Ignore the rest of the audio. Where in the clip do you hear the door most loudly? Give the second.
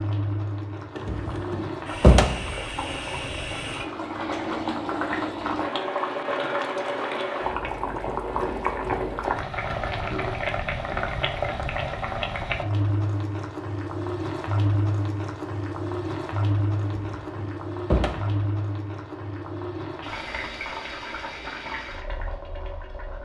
2 s.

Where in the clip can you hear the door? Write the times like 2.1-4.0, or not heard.
0.9-2.5, 16.8-18.4.